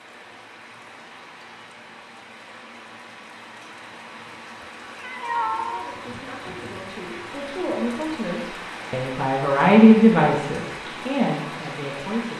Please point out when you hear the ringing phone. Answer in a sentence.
You can't hear the ringing phone here.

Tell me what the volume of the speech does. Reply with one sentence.
The loudness of the speech goes up, then down.